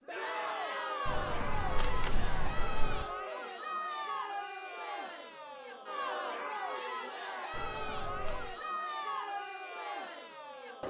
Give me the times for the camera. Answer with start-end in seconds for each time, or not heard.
1.1-3.0, 7.5-8.6.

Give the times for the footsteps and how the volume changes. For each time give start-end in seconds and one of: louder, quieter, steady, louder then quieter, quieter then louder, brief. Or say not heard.
not heard.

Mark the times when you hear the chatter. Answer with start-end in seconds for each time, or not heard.
0.0-10.8.